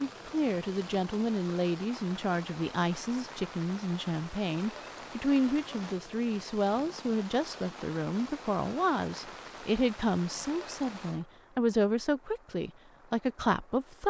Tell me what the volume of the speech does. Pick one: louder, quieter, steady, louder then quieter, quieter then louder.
steady.